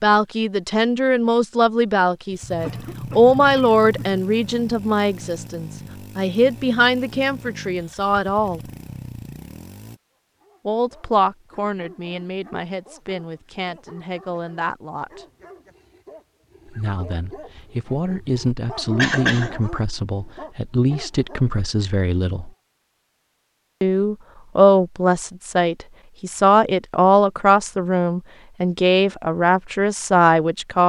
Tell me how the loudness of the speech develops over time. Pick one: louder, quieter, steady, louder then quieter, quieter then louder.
quieter then louder.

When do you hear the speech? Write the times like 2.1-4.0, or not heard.
0.0-8.6, 10.7-15.2, 16.6-22.5, 23.8-30.8.